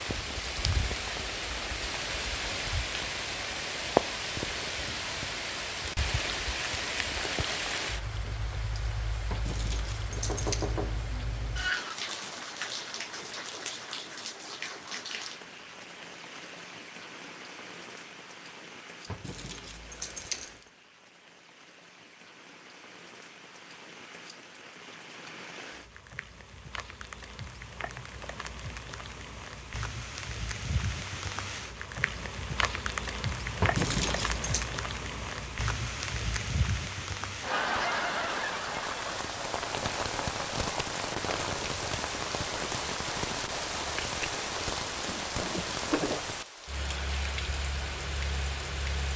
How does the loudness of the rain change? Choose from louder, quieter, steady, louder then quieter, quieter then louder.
quieter then louder.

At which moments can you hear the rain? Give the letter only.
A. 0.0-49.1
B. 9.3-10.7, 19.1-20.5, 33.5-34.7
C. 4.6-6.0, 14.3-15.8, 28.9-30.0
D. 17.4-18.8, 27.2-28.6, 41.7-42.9
A.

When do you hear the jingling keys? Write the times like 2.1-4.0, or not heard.
9.3-10.7, 19.1-20.5, 33.5-34.7.